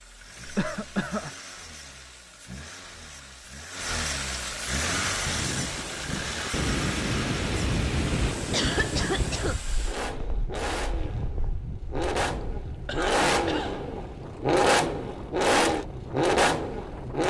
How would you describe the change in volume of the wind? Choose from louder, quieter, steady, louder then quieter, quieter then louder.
quieter.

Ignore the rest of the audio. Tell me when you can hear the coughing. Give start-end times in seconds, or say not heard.
0.5-1.3, 8.5-9.6, 12.4-13.8.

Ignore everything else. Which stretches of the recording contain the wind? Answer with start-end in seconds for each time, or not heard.
4.8-17.2.